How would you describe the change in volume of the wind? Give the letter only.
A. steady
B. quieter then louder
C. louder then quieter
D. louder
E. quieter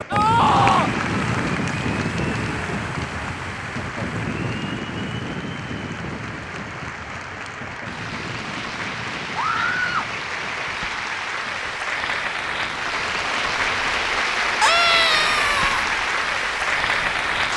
E.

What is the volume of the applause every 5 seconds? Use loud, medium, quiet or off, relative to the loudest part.
medium, medium, loud, loud.